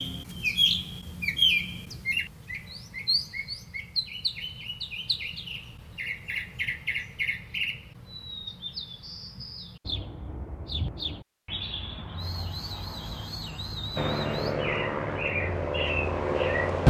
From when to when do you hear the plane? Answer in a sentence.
The plane can be heard from 13.9 to 16.8 s.